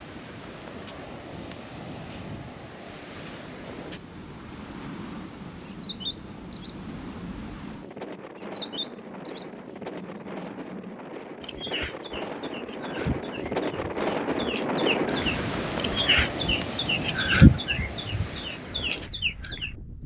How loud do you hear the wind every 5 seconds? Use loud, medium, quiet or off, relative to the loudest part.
medium, medium, loud, loud.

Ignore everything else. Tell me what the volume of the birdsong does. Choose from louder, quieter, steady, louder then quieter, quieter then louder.
louder.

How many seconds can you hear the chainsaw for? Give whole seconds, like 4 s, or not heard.
not heard.